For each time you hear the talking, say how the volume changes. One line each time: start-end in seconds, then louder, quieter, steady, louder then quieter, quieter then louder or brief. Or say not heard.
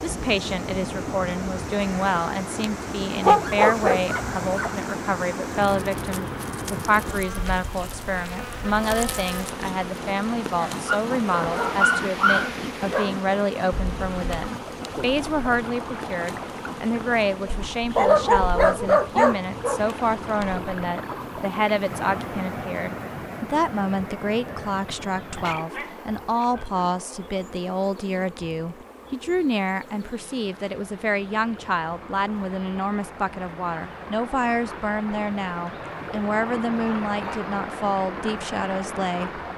0.0-39.5 steady.